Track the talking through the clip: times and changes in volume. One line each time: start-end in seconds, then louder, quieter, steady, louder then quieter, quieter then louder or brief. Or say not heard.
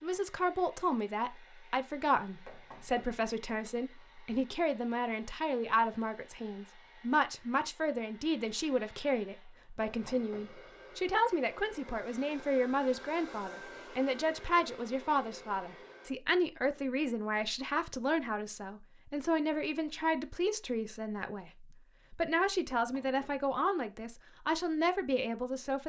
0.0-25.8 steady.